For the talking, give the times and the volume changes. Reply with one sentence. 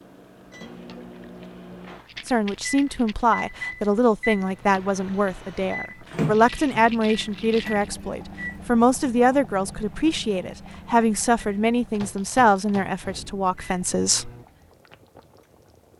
The talking can be heard from 2.2 to 14.3 s, at a steady volume.